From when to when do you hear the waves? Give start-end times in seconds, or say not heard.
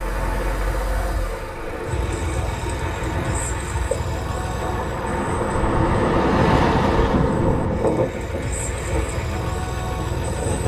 0.0-10.6.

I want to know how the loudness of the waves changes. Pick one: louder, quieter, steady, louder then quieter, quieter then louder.
louder then quieter.